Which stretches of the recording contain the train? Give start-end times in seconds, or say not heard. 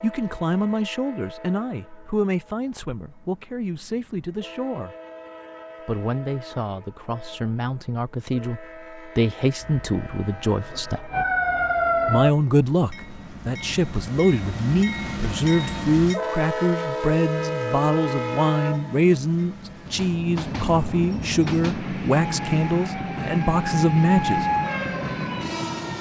0.0-25.9.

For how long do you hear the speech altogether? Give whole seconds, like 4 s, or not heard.
23 s.